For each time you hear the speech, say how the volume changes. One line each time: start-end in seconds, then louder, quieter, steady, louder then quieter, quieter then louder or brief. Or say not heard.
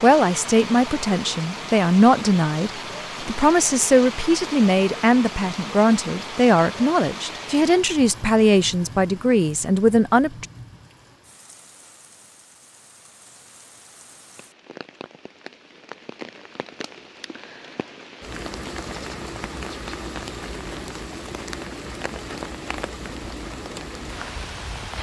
0.0-10.4 steady.